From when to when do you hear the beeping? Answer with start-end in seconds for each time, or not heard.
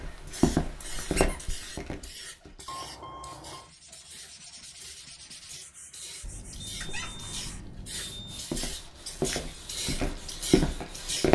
2.6-3.7, 6.2-8.5.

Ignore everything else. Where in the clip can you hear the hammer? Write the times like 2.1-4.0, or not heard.
not heard.